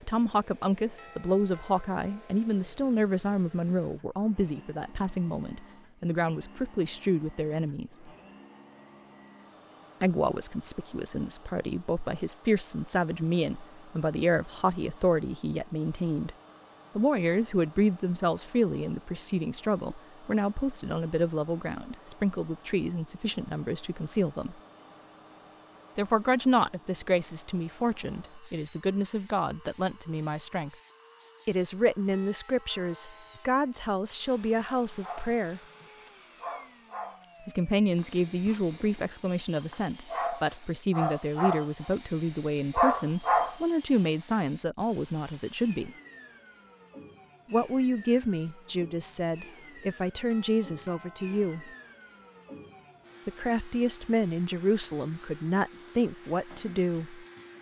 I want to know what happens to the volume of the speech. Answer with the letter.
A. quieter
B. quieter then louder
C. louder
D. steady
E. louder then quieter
D.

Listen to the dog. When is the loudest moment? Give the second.
43 s.